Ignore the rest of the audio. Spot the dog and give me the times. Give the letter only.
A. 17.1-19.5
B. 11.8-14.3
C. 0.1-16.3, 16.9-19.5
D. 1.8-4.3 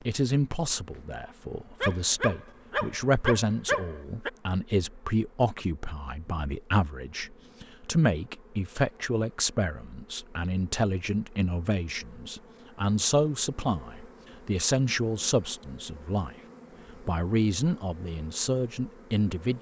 D.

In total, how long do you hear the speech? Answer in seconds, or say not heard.
19 s.